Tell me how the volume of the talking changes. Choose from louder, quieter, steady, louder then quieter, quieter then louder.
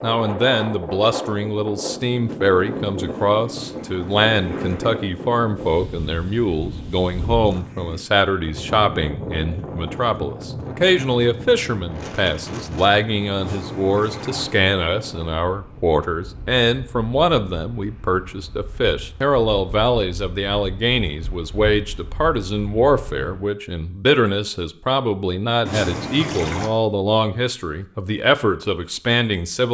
steady.